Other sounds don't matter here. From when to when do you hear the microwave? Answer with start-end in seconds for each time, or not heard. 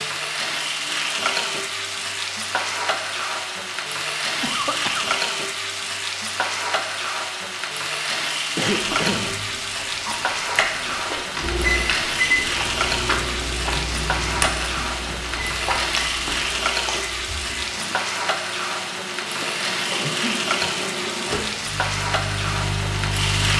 11.4-23.5.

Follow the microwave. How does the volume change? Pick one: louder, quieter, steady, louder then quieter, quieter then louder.
quieter then louder.